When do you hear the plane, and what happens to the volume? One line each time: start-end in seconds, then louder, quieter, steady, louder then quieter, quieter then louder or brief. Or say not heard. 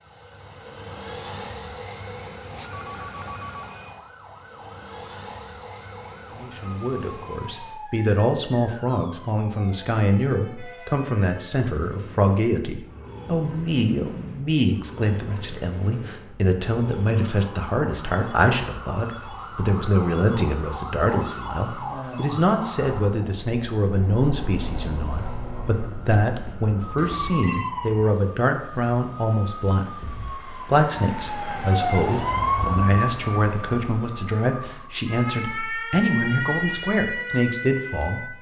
0.0-7.8 quieter.